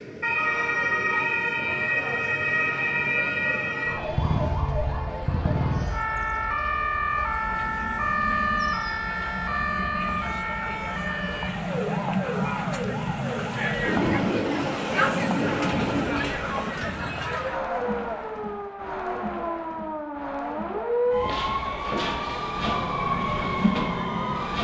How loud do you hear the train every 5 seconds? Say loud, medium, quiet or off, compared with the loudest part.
off, medium, loud, loud, off.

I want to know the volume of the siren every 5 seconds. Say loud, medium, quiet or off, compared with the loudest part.
loud, loud, medium, medium, loud.